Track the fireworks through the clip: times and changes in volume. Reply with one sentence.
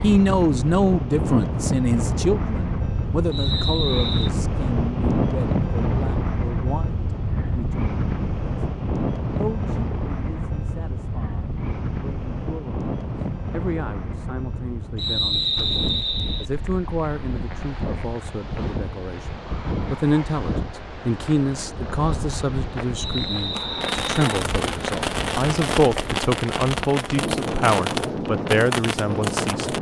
The fireworks can be heard from 23.6 to 29.7 s, at a steady volume.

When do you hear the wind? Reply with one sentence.
You can hear the wind from 0.0 to 29.7 s.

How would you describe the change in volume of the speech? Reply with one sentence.
The volume of the speech goes down, then up.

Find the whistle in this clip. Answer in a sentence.
The whistle can be heard from 3.3 to 4.3 s, from 14.9 to 16.4 s and from 22.9 to 24.2 s.